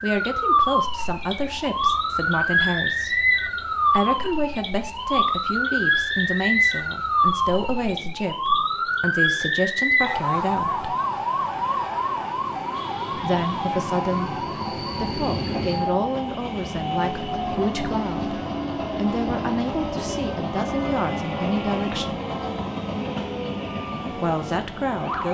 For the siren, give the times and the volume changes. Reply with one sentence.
You can hear the siren from 0.0 to 25.2 s, getting quieter.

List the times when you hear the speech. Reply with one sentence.
The speech can be heard from 0.0 to 3.2 s, from 3.9 to 10.8 s, from 13.1 to 22.2 s and from 24.1 to 25.2 s.